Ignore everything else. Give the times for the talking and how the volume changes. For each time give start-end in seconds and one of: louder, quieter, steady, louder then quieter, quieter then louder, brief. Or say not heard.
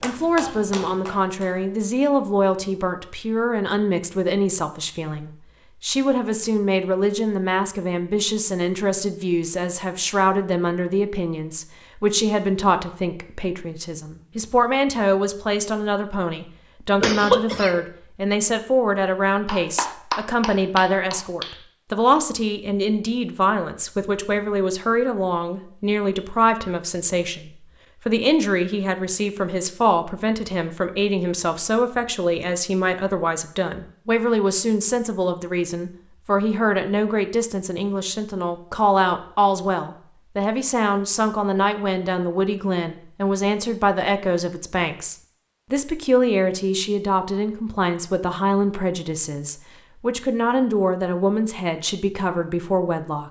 0.0-53.2 steady.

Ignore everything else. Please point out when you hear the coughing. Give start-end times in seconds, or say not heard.
17.0-17.8.